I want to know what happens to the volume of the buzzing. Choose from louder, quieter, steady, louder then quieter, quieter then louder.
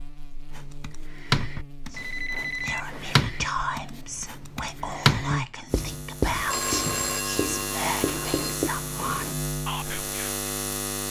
louder.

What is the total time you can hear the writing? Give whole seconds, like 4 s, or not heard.
9 s.